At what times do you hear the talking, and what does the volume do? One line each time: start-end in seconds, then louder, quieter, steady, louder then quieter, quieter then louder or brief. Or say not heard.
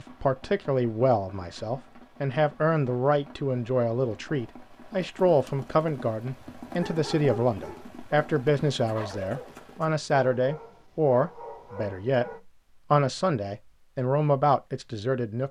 0.0-15.4 steady.